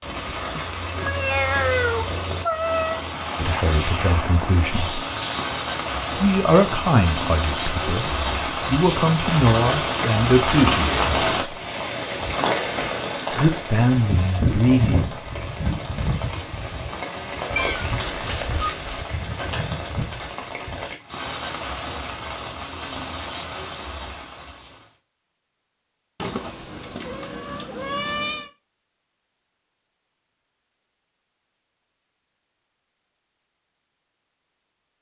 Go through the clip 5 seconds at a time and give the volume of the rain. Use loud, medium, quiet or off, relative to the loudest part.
medium, loud, loud, medium, medium, off, off.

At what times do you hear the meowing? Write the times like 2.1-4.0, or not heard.
0.6-3.0, 17.6-19.1, 26.1-28.5.